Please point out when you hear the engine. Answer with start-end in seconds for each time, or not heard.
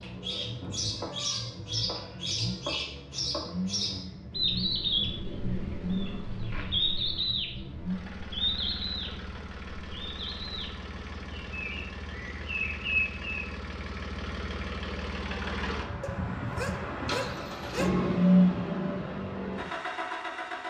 0.0-20.6.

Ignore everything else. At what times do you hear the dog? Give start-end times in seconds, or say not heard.
16.0-17.9.